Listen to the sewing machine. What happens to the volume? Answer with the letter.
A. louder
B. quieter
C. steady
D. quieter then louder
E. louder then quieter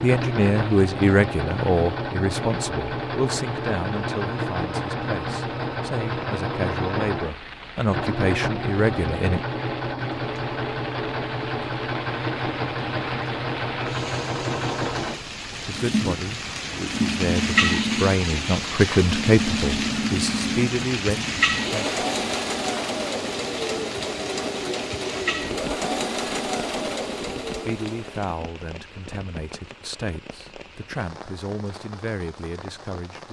C.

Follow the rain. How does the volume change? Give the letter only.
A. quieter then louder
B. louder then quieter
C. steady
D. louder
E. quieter
B.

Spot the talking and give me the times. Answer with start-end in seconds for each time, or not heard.
0.0-9.4, 15.6-21.9, 27.6-33.2.